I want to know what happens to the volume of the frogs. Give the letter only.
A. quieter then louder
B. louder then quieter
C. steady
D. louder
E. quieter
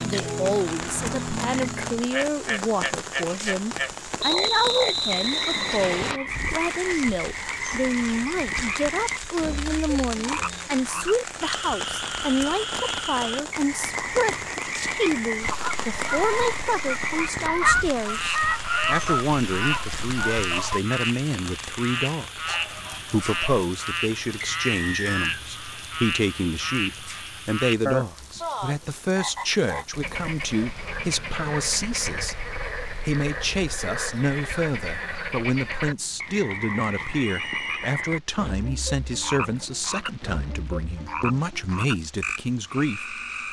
C.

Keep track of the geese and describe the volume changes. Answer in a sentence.
The loudness of the geese goes up, then down.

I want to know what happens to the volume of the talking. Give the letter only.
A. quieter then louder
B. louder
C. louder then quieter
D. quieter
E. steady
E.